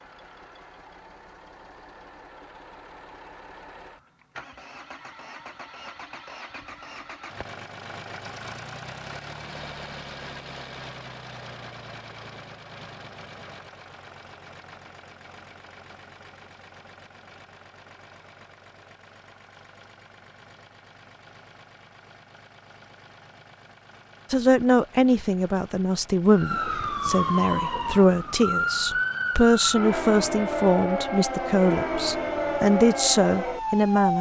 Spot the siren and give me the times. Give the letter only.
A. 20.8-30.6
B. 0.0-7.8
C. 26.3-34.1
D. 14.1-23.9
C.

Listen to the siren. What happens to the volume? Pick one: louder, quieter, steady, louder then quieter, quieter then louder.
steady.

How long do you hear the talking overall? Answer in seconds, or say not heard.
10 s.